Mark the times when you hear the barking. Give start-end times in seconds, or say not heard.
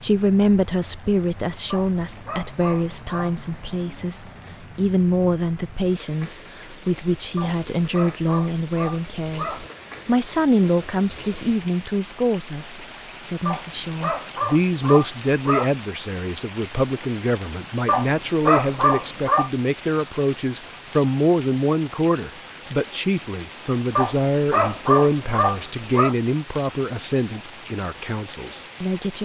1.7-3.4, 7.3-9.7, 13.4-15.8, 17.9-19.5, 23.9-26.1.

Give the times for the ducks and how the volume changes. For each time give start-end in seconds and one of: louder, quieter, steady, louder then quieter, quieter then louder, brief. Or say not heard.
not heard.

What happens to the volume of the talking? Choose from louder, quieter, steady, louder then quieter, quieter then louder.
steady.